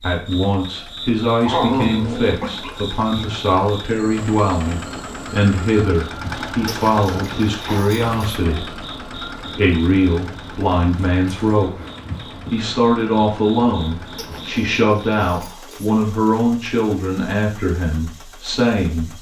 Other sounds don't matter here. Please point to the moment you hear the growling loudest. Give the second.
2 s.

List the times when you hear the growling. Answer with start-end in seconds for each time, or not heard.
1.4-3.2, 6.7-8.4, 14.2-15.9.